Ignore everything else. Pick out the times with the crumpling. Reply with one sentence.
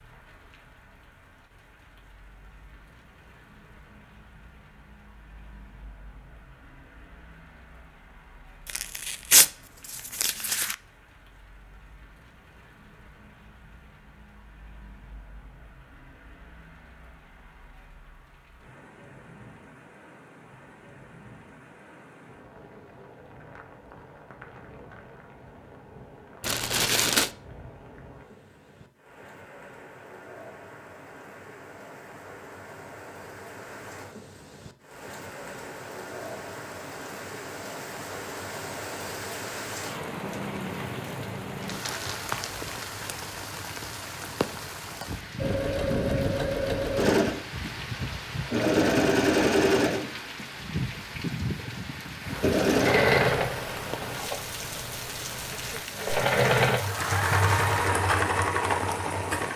You can hear the crumpling from 8.7 to 10.8 s, from 26.4 to 27.3 s and from 41.6 to 43.2 s.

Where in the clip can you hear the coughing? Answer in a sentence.
You can't hear the coughing here.